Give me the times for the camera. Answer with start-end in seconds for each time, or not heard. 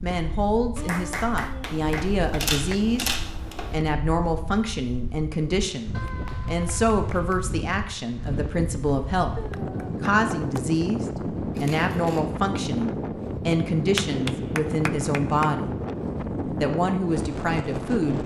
1.6-3.8, 11.6-12.2.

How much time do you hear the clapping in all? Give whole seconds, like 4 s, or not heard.
7 s.